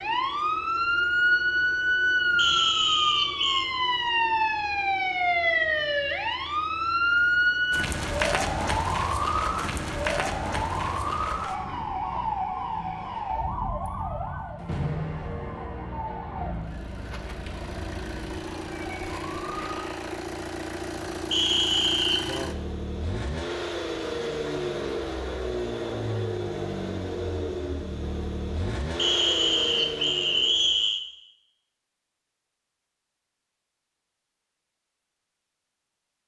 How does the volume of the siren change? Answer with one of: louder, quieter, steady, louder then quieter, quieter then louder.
quieter.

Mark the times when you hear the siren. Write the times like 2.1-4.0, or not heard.
0.0-19.9.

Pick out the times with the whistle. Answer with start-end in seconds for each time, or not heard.
2.4-3.7, 21.3-22.4, 28.9-31.0.